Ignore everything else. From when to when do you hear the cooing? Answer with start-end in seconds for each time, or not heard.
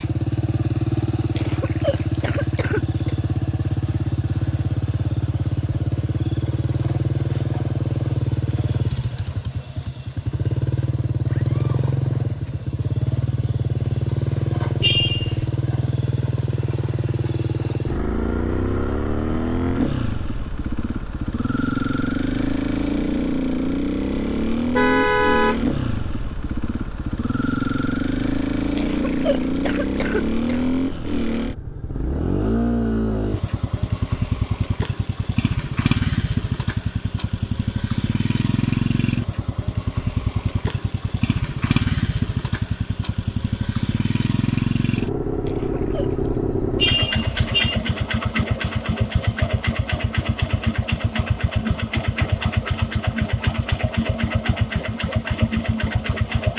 not heard.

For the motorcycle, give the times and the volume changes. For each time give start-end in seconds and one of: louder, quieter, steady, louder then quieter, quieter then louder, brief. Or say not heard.
0.0-56.5 steady.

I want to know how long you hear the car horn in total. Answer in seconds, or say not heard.
3 s.